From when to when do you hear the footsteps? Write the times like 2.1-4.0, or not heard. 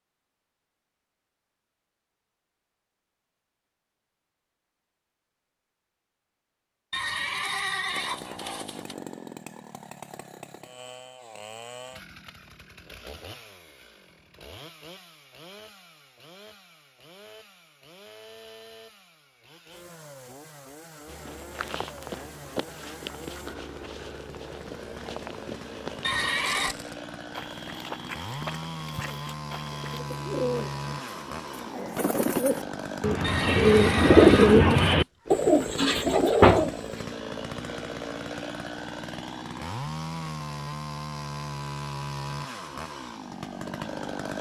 21.1-30.0.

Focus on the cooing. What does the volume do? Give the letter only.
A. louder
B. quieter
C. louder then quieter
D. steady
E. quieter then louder
C.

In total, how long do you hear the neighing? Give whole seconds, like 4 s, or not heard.
5 s.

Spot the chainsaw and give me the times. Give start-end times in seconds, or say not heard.
7.9-44.3.